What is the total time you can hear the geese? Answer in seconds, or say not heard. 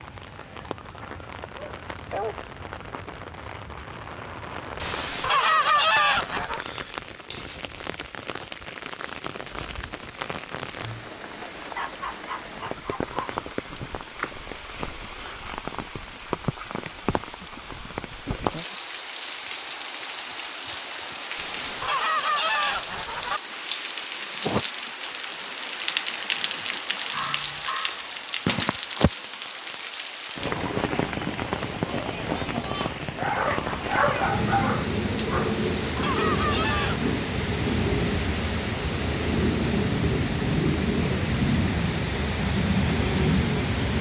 5 s.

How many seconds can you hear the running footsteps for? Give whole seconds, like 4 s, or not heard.
not heard.